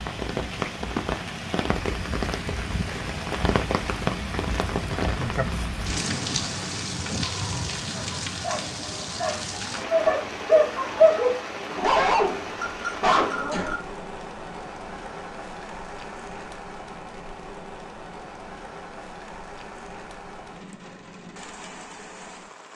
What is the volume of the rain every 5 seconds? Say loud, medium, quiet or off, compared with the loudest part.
loud, loud, medium, medium, quiet.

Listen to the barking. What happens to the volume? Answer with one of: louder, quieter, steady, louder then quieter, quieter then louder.
louder then quieter.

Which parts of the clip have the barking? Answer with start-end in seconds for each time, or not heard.
8.0-13.8.